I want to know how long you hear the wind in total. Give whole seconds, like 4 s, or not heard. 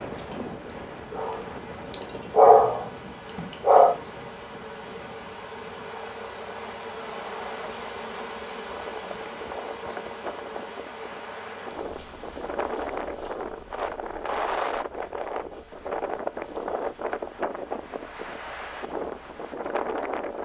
20 s.